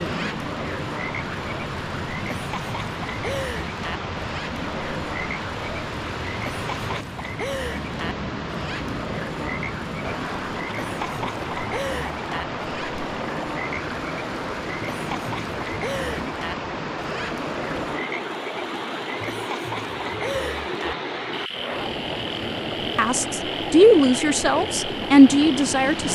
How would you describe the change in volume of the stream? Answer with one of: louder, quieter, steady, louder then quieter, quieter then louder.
steady.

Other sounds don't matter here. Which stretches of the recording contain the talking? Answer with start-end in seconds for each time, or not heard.
22.9-26.1.